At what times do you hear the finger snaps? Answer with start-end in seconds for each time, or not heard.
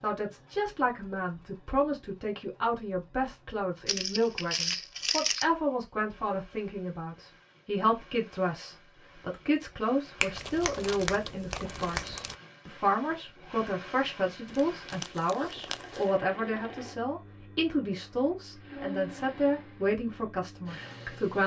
10.2-12.2.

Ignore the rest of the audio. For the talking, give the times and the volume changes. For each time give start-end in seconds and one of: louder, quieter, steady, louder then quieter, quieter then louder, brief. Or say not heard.
0.0-21.4 steady.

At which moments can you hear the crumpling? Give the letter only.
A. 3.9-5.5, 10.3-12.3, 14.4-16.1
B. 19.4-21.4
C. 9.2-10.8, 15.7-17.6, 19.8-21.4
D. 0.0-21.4
A.